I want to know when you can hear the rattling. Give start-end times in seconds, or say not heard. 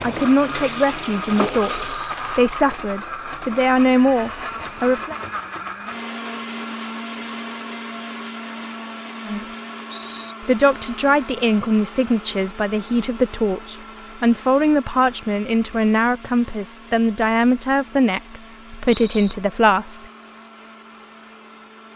1.7-2.1, 9.9-10.3, 18.9-19.4.